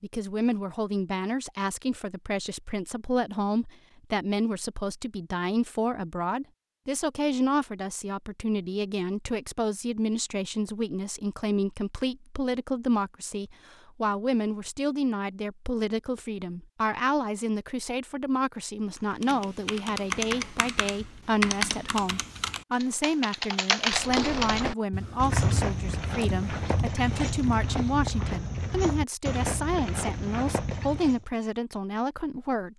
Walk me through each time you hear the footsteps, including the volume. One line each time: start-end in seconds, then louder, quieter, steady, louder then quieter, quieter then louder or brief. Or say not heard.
23.9-31.2 steady.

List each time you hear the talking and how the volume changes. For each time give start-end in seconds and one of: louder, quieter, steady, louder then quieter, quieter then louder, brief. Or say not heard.
0.0-32.7 steady.